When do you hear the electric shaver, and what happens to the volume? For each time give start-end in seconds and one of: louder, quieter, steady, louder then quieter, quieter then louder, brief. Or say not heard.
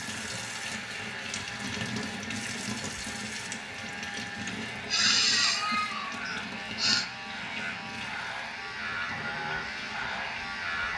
0.0-10.9 louder.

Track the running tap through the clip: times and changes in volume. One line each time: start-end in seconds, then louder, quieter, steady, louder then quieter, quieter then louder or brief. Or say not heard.
0.0-10.9 quieter.